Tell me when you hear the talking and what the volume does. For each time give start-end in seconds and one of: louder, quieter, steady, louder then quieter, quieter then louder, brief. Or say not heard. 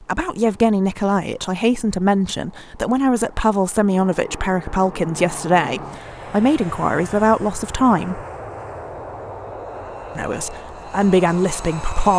0.0-8.2 steady
10.2-12.1 brief.